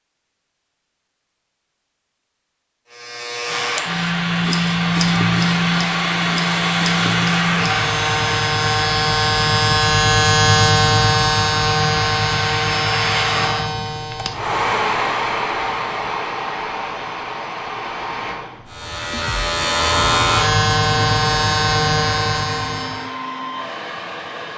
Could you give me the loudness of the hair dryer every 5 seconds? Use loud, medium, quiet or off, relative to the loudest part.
loud, loud, loud, loud, medium.